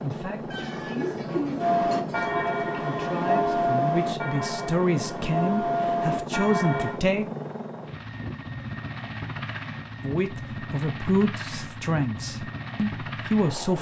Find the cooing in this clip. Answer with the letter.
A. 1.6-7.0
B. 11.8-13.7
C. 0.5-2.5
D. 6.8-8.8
C.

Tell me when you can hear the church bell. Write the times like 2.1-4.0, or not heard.
1.6-7.0.